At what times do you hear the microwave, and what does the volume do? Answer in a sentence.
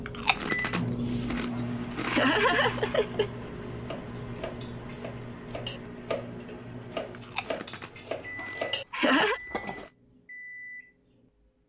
You can hear the microwave from 0.0 to 11.6 s, getting quieter.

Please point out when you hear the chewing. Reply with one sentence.
The chewing can be heard from 0.1 to 2.9 s and from 7.1 to 9.9 s.